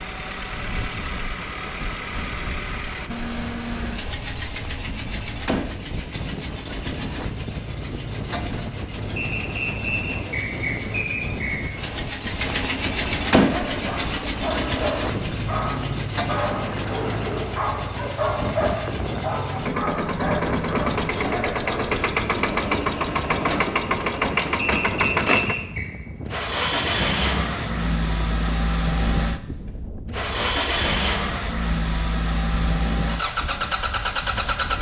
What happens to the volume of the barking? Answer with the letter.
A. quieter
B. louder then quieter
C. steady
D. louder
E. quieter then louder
C.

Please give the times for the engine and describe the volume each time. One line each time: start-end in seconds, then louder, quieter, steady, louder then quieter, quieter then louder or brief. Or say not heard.
0.0-34.7 louder.